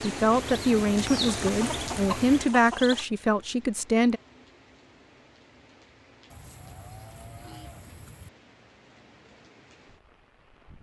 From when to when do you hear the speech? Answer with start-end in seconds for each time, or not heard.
0.0-4.2.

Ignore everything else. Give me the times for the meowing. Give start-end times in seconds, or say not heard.
not heard.